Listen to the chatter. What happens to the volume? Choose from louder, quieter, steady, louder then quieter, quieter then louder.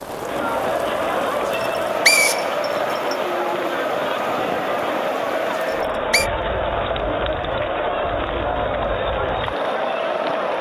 steady.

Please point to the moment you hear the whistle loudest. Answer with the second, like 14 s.
2 s.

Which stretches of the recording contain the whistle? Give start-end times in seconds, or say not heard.
1.5-3.1, 5.6-6.3.